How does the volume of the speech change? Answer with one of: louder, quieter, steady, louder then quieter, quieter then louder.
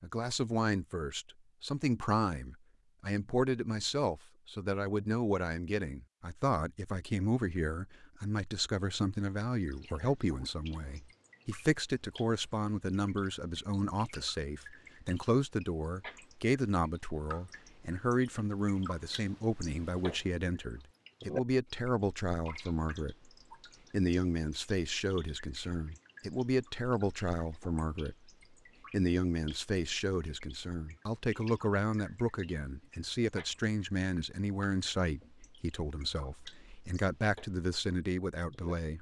steady.